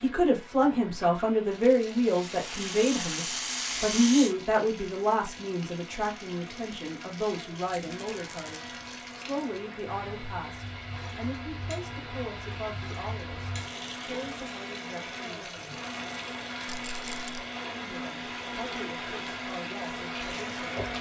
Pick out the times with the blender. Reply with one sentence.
The blender can be heard from 0.0 to 20.9 s.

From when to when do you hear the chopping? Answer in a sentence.
You can't hear the chopping here.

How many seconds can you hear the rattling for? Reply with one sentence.
You can hear the rattling for 4 seconds altogether.